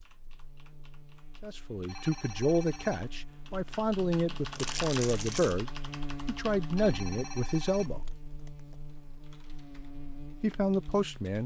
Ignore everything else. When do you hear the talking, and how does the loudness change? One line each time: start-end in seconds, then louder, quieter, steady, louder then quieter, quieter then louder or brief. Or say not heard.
1.4-8.1 steady
10.4-11.4 brief.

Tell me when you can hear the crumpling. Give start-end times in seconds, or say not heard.
4.5-5.6.